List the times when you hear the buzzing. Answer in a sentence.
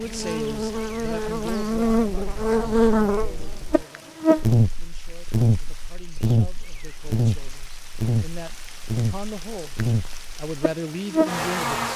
The buzzing can be heard from 0.0 to 11.9 s.